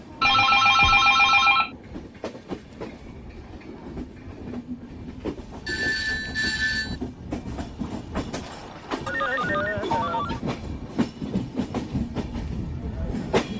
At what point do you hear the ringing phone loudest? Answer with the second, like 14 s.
1 s.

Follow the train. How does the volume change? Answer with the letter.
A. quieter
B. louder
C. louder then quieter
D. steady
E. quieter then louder
B.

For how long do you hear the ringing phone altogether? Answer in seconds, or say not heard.
4 s.